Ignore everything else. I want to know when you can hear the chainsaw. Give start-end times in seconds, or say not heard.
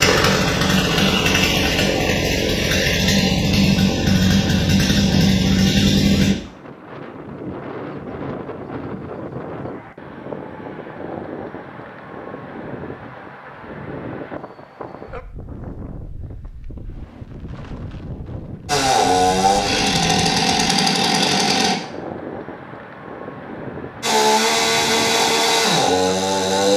0.0-6.3, 18.6-21.8, 24.0-26.7.